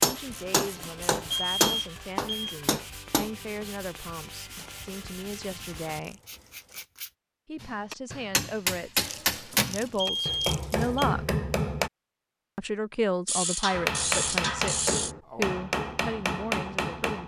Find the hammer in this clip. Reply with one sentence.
You can hear the hammer from 0.0 to 3.3 s, from 7.6 to 11.9 s and from 13.7 to 17.2 s.